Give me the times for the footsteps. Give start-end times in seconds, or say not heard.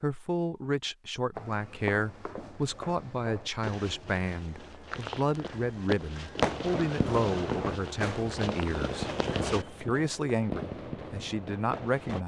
1.4-9.7.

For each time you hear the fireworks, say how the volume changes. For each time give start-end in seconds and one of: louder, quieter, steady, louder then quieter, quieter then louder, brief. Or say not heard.
6.3-12.2 quieter.